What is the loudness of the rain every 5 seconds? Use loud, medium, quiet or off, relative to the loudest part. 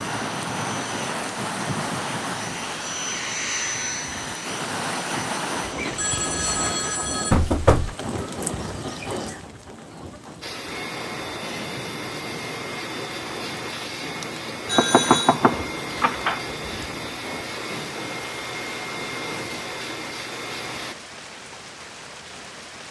loud, loud, medium, medium, medium.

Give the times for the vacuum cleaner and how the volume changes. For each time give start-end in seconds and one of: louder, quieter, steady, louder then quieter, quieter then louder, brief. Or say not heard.
0.0-7.0 louder then quieter
10.4-20.9 steady.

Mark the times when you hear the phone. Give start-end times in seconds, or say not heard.
6.0-7.3, 14.7-15.4.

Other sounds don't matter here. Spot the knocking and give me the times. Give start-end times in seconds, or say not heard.
7.3-8.0, 14.8-16.4.